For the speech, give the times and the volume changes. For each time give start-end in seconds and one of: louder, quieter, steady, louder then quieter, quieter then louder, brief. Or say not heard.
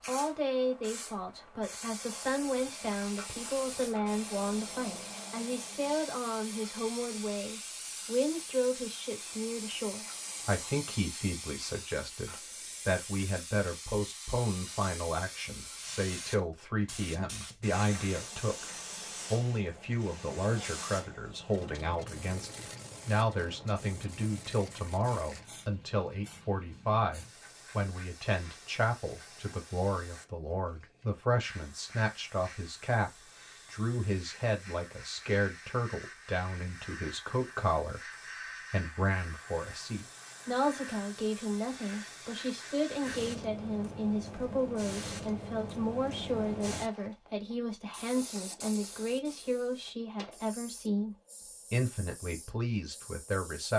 0.1-53.7 steady.